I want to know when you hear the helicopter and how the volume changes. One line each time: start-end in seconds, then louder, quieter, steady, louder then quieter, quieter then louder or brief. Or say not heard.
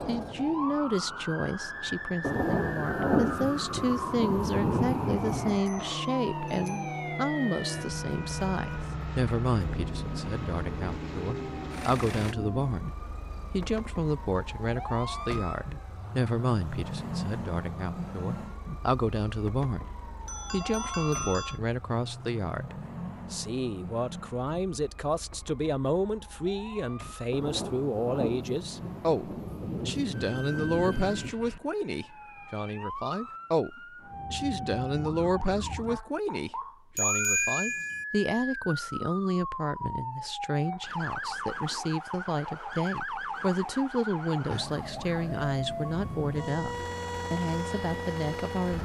5.8-12.3 steady
46.0-48.7 brief.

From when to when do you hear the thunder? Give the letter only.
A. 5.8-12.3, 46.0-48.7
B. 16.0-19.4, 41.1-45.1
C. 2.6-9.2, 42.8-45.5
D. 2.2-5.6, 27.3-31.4
D.